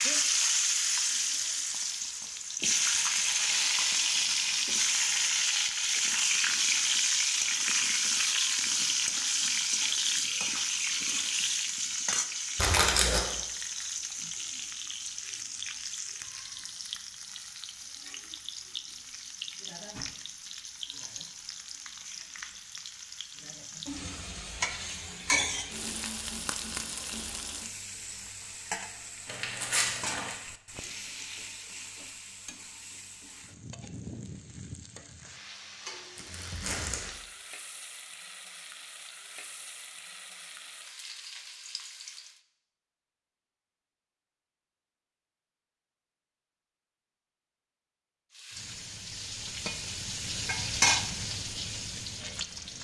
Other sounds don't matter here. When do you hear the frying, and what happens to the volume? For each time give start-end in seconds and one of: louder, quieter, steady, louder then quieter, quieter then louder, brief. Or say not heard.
0.0-42.4 quieter
48.3-52.7 louder then quieter.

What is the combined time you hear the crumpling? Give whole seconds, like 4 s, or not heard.
3 s.